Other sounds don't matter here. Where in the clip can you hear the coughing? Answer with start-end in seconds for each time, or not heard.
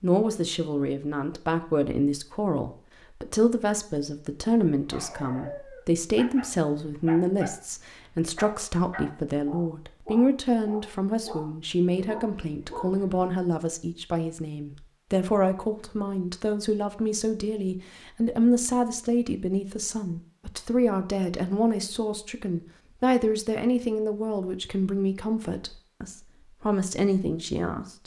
not heard.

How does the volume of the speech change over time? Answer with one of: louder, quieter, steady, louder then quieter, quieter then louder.
steady.